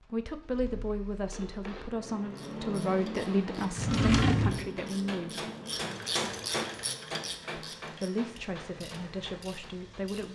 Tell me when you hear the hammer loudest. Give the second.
6 s.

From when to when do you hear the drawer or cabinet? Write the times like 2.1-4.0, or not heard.
3.8-4.7.